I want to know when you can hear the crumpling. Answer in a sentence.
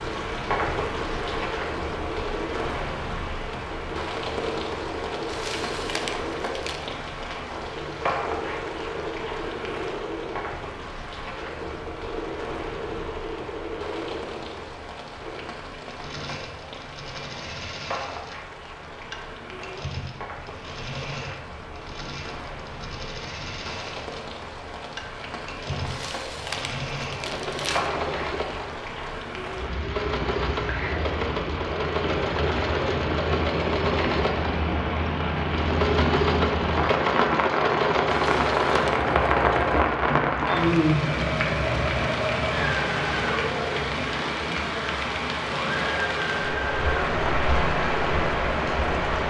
You can hear the crumpling from 5.2 to 6.9 s, from 25.9 to 27.9 s and from 38.1 to 39.0 s.